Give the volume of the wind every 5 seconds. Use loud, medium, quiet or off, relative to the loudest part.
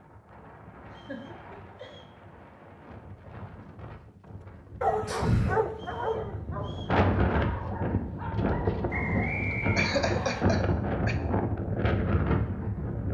quiet, loud, loud.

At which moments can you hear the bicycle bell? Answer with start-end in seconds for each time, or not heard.
not heard.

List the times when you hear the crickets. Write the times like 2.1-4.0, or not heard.
not heard.